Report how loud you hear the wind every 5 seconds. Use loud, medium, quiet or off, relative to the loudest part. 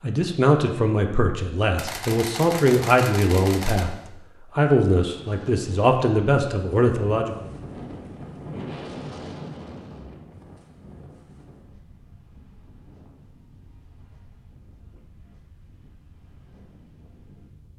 off, loud, quiet, quiet.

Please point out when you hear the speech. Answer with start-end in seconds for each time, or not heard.
0.0-7.5.